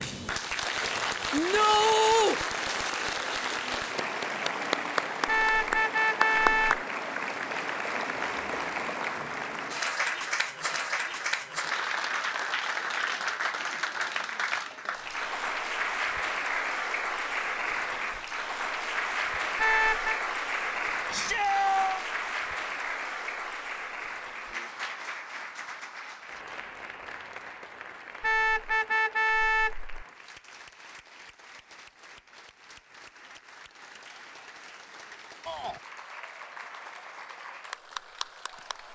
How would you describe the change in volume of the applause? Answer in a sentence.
The loudness of the applause goes down.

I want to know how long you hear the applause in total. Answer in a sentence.
The applause can be heard for 39 seconds in total.